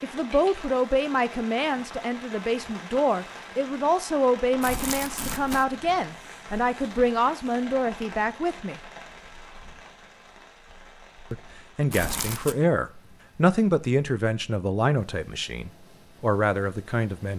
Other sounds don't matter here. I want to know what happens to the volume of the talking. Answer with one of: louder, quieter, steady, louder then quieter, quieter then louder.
steady.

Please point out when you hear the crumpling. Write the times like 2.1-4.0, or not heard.
4.6-5.7, 11.9-12.6.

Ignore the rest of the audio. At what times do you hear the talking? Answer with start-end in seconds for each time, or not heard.
0.0-8.8, 11.3-17.3.